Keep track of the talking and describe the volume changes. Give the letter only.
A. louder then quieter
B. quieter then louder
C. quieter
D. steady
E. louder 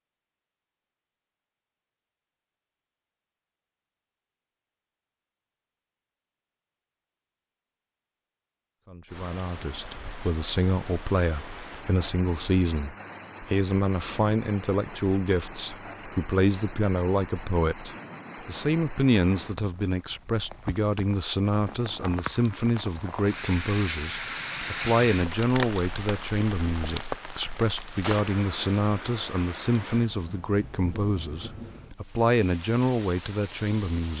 D.